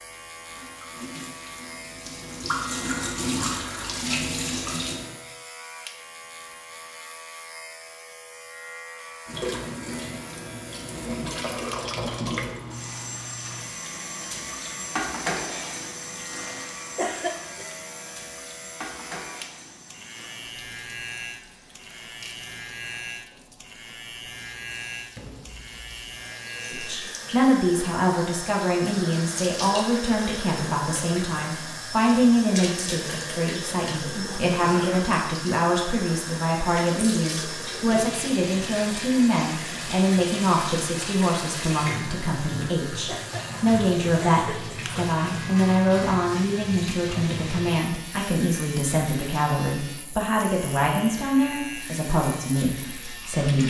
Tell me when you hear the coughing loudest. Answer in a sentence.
The loudest moment of the coughing is at 17 seconds.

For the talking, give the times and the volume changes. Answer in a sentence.
The talking can be heard from 26.7 to 53.6 s, at a steady volume.